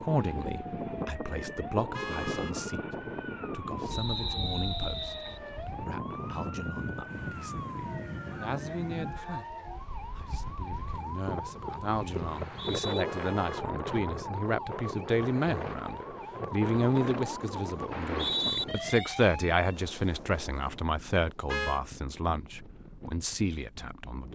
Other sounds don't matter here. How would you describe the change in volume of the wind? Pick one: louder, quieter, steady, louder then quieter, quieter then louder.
quieter.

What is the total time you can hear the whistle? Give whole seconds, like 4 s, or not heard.
3 s.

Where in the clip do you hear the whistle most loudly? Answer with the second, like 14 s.
18 s.